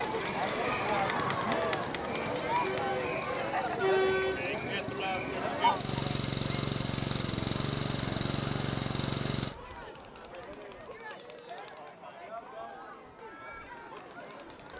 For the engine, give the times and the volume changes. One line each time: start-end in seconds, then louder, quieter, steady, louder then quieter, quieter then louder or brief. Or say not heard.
0.0-9.6 louder.